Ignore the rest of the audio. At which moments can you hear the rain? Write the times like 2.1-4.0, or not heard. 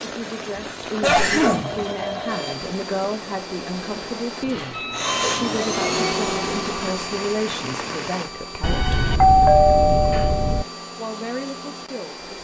0.0-8.3.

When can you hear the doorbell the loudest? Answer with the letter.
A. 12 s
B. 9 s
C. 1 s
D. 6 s
B.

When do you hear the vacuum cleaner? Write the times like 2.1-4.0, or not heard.
2.2-12.3.